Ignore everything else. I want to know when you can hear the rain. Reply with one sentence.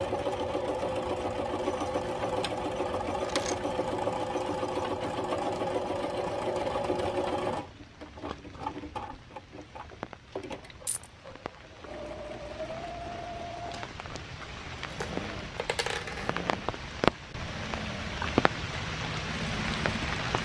You can hear the rain from 7.5 to 20.4 s.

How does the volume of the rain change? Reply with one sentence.
The volume of the rain goes up.